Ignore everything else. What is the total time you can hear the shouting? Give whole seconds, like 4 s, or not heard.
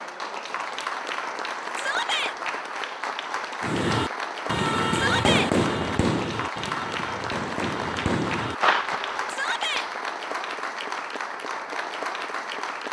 2 s.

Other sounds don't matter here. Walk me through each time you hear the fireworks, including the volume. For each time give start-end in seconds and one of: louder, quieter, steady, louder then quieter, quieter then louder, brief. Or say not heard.
3.6-9.3 quieter then louder.